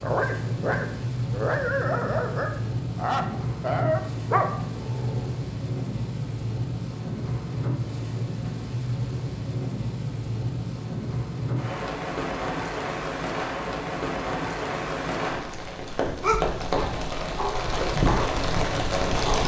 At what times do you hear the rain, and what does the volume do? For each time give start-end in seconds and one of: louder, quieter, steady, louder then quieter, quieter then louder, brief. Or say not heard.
0.0-19.4 steady.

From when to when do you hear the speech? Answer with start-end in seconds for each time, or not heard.
not heard.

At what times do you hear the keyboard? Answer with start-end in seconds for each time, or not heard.
not heard.